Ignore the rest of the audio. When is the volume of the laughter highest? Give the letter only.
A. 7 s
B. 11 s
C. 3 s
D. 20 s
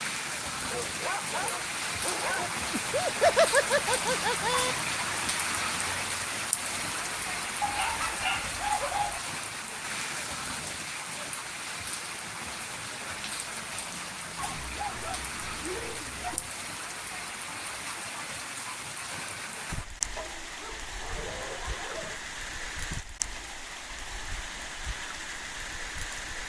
C.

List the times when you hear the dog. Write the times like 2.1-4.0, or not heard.
0.6-2.5, 7.6-9.2, 14.3-16.5, 20.1-22.2.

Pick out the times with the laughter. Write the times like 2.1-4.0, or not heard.
2.7-4.8, 19.1-19.6.